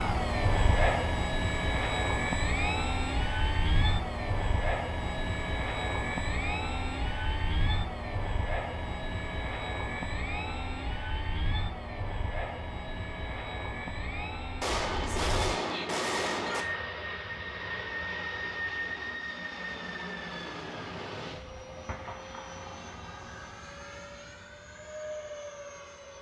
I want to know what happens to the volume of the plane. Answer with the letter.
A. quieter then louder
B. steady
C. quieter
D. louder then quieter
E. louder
C.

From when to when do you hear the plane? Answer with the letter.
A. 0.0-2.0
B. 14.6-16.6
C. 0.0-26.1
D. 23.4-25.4
C.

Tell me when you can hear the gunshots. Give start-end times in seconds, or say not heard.
14.6-16.6.